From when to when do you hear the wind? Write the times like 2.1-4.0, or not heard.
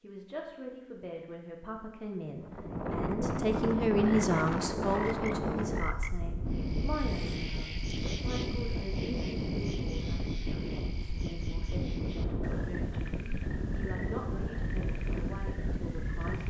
2.4-16.4.